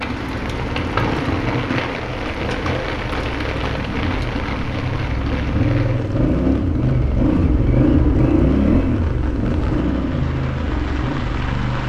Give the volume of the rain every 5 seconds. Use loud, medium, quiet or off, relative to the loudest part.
loud, medium, medium.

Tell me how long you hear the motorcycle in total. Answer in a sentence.
You can hear the motorcycle for 12 seconds altogether.